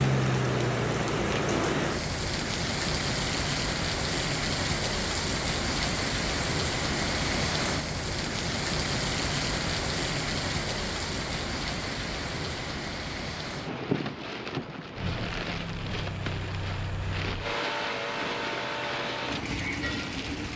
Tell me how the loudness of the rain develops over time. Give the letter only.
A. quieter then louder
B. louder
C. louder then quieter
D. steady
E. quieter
E.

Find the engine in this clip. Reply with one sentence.
You can hear the engine from 14.9 to 20.5 s.